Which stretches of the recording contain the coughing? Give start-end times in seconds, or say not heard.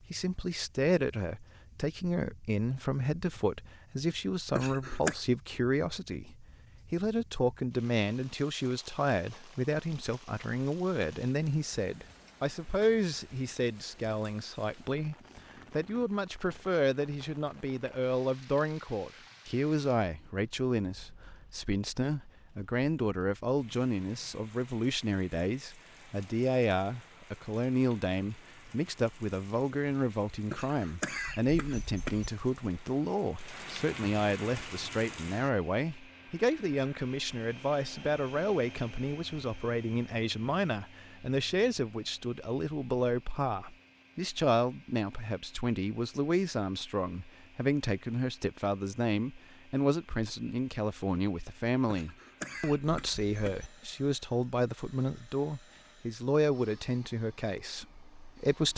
4.5-5.2, 30.5-32.3, 51.9-53.7.